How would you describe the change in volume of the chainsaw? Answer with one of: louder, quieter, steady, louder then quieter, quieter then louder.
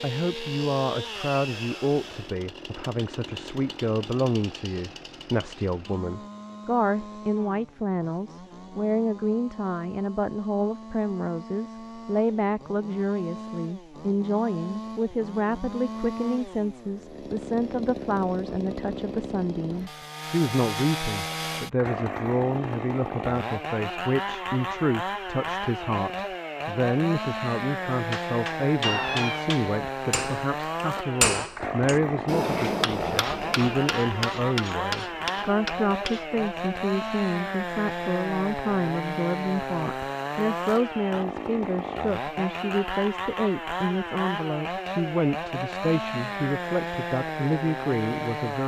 louder.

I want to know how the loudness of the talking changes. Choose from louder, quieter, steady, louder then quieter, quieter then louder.
steady.